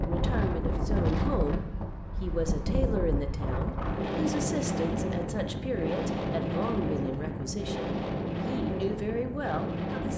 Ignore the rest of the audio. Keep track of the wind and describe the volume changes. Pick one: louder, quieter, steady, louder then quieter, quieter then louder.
steady.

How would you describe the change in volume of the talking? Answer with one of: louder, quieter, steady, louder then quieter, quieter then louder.
steady.